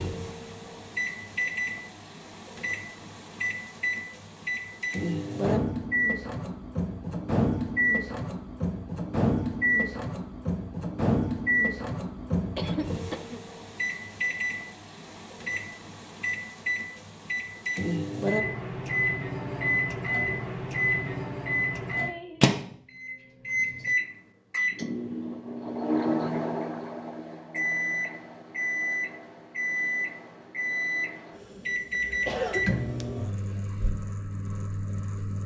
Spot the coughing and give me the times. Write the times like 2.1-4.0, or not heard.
12.6-13.4, 32.2-32.7.